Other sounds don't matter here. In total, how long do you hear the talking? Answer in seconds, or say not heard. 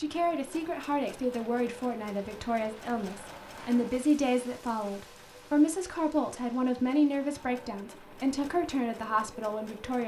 10 s.